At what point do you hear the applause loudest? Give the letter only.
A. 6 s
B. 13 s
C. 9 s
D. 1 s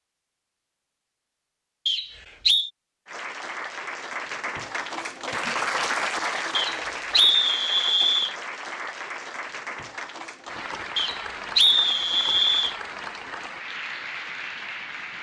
A.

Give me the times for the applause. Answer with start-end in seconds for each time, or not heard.
3.0-15.1.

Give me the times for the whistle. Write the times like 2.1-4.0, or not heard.
1.9-2.7, 6.5-8.3, 10.9-12.8.